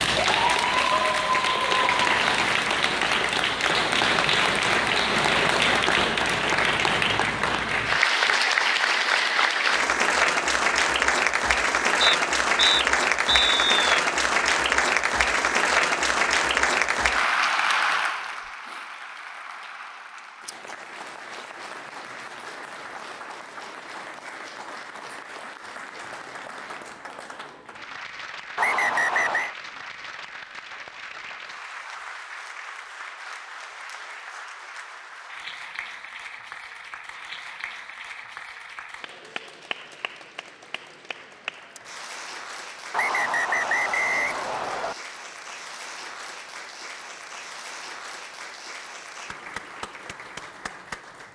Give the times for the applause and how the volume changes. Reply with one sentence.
You can hear the applause from 0.0 to 51.2 s, getting quieter.